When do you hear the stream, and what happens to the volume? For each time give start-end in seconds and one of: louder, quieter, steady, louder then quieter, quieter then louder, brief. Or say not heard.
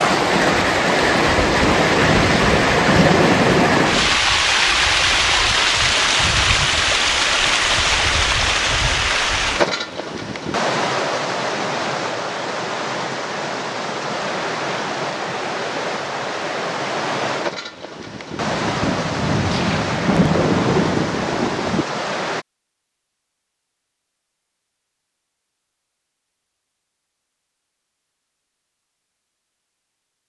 0.0-22.4 quieter.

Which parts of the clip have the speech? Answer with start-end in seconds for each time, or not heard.
not heard.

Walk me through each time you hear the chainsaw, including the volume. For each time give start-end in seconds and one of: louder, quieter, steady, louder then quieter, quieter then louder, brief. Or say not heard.
not heard.